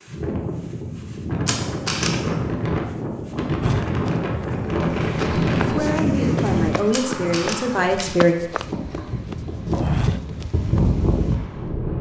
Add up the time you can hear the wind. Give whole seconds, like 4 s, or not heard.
12 s.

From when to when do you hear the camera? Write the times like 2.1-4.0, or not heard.
1.4-2.1, 6.9-8.1.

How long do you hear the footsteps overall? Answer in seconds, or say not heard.
7 s.